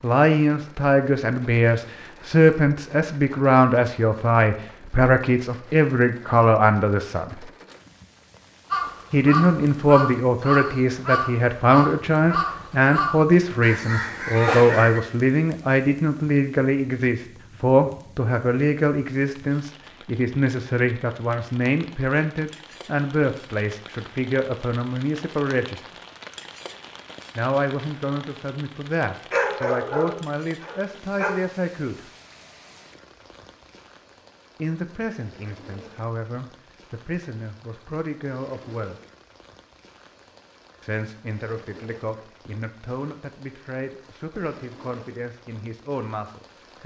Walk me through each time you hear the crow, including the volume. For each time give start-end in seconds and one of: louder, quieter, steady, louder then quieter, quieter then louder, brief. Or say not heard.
8.7-15.0 steady.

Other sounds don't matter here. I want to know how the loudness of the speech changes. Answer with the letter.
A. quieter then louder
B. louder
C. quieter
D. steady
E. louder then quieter
C.